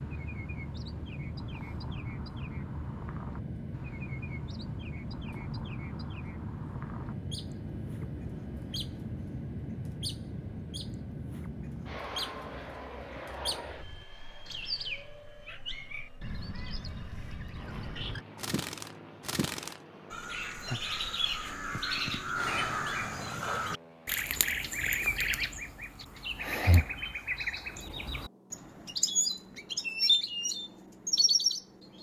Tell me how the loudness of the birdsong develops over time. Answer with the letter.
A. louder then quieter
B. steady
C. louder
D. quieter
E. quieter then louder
C.